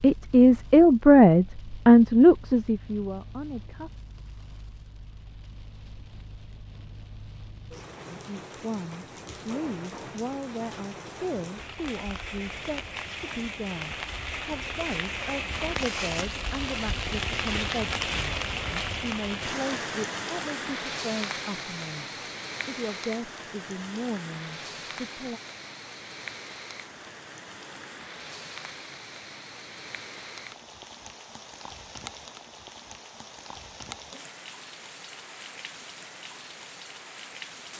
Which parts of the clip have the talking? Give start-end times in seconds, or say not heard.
0.0-3.9, 8.1-25.4.